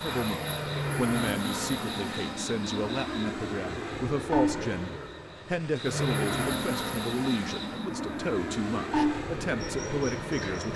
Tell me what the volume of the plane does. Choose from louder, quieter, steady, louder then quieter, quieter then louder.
steady.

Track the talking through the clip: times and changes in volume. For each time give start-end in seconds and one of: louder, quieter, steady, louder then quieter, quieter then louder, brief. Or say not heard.
0.0-10.7 steady.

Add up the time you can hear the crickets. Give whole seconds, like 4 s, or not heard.
11 s.